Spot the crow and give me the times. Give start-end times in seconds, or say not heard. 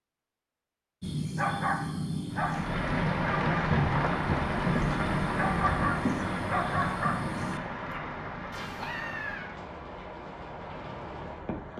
not heard.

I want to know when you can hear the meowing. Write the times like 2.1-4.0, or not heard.
8.5-9.5.